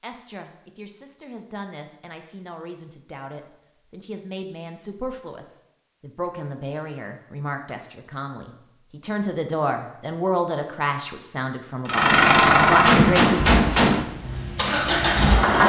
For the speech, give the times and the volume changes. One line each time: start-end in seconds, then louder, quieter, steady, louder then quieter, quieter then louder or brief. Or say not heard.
0.0-13.3 louder.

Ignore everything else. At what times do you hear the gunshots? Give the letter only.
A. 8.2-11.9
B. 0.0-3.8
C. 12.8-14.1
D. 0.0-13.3
C.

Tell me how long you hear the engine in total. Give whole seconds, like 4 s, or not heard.
4 s.